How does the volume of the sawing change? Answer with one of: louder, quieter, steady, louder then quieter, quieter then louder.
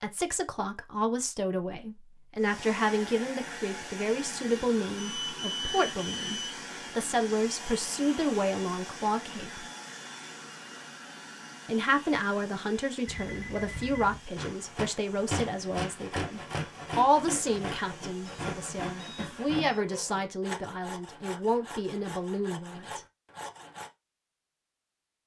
quieter.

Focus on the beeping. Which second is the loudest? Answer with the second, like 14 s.
6 s.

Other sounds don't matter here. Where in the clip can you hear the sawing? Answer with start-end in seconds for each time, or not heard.
14.3-23.9.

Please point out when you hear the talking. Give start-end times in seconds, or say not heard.
0.0-9.7, 11.7-23.0.